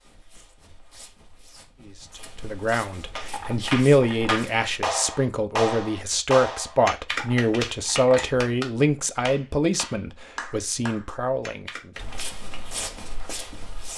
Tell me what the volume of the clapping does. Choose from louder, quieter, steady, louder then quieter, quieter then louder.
quieter.